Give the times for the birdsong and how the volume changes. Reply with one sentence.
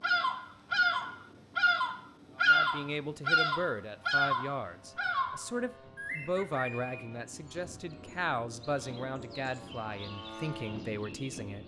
The birdsong can be heard from 0.0 to 11.6 s, getting quieter.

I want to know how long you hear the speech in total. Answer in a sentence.
You can hear the speech for 9 seconds altogether.